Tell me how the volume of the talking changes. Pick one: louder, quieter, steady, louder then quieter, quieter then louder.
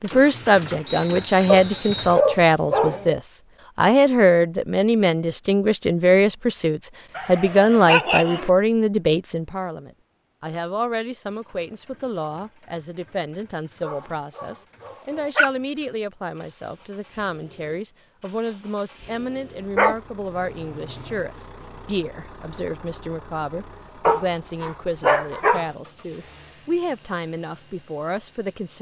quieter.